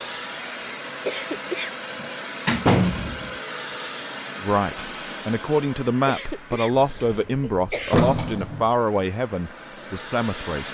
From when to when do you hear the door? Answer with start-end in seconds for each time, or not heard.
2.0-3.3, 6.8-8.7.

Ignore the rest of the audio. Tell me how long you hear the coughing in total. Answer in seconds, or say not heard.
3 s.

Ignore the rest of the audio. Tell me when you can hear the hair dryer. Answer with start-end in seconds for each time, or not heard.
0.0-10.6.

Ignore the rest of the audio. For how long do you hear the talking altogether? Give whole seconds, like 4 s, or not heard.
6 s.